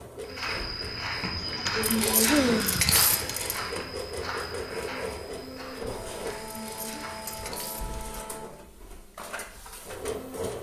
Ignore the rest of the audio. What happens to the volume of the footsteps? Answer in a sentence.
The loudness of the footsteps goes down.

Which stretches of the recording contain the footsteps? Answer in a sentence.
The footsteps can be heard from 0.2 to 7.6 s.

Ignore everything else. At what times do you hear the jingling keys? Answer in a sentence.
You can hear the jingling keys from 1.8 to 3.6 s and from 6.5 to 8.0 s.